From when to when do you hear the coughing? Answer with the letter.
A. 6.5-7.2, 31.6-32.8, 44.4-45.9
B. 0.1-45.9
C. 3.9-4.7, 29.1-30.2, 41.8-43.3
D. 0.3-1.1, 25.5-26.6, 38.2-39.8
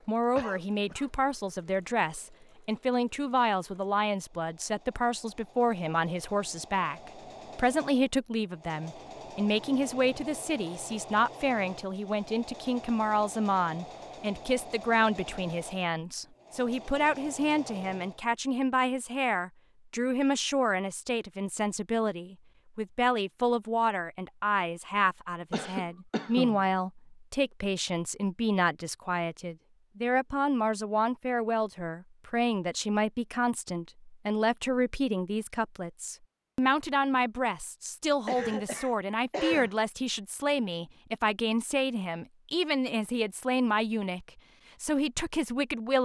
D.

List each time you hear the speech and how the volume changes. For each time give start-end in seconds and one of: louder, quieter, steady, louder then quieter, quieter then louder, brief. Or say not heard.
0.1-45.9 steady.